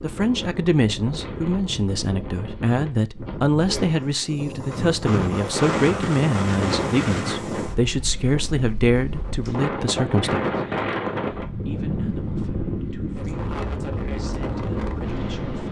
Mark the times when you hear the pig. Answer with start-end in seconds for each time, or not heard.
not heard.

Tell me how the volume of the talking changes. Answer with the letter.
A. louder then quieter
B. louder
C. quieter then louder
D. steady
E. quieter
E.